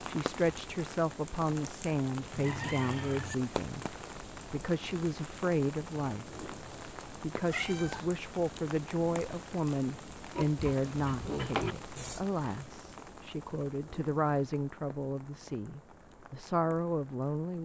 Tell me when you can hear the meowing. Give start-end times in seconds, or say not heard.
7.5-8.1.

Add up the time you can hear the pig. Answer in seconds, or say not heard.
2 s.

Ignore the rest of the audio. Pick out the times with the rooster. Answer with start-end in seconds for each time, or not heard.
2.3-3.4.